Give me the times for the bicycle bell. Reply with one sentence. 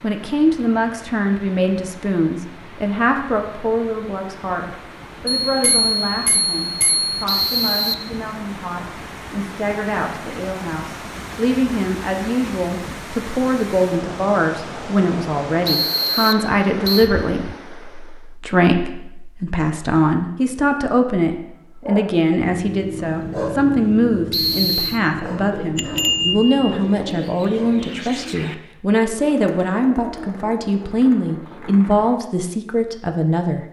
You can hear the bicycle bell from 5.4 to 7.2 s and from 25.8 to 26.7 s.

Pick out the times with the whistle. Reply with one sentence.
The whistle can be heard from 7.2 to 8.1 s, from 15.7 to 17.1 s and from 24.3 to 25.0 s.